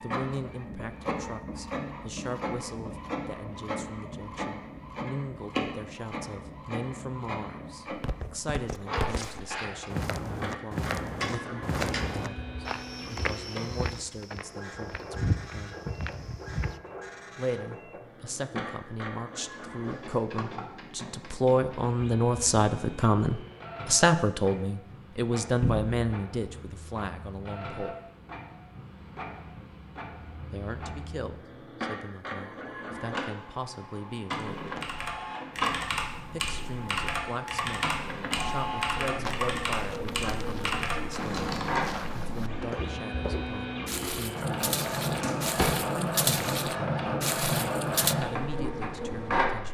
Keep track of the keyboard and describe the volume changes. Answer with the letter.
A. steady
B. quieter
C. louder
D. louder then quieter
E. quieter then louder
A.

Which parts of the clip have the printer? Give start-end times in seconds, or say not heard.
0.0-49.7.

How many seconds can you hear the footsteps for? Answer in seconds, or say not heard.
18 s.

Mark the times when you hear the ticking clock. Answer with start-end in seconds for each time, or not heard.
not heard.